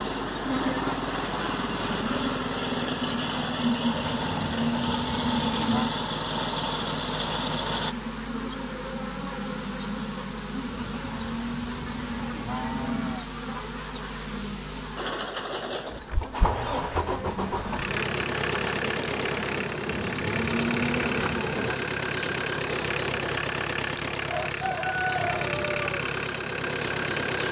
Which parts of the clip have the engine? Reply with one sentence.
You can hear the engine from 0.0 to 8.0 s and from 14.9 to 27.4 s.